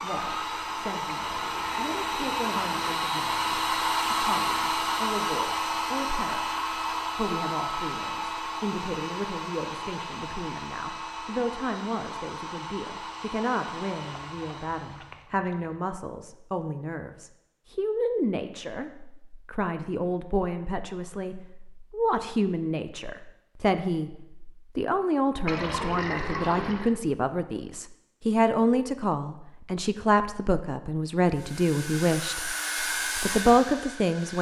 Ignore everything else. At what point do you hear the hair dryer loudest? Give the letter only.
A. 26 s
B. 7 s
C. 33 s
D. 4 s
D.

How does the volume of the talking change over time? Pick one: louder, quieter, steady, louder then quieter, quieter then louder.
louder.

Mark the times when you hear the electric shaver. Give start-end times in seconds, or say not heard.
not heard.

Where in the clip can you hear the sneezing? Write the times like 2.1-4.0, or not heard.
not heard.